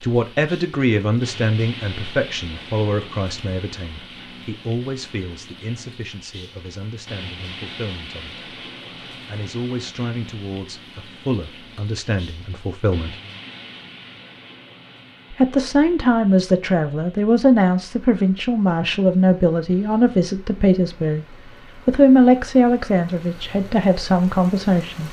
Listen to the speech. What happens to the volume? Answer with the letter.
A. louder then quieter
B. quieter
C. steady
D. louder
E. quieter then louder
E.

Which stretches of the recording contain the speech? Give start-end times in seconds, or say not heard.
0.0-8.4, 9.2-13.2, 15.3-21.2, 21.9-25.0.